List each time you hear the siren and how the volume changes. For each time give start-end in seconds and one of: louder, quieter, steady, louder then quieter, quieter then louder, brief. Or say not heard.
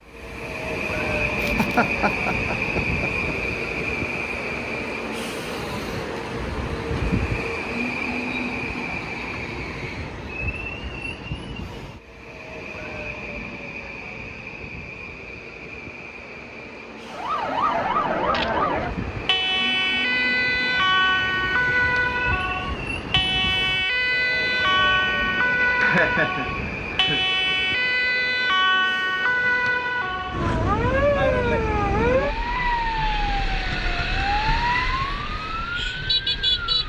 17.1-36.8 steady.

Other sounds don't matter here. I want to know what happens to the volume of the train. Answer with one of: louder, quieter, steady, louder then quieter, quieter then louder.
quieter.